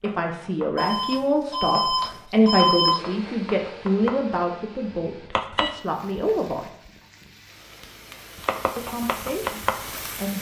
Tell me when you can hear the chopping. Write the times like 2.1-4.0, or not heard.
0.0-5.8, 8.3-10.2.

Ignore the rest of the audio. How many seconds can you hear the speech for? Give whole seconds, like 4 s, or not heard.
8 s.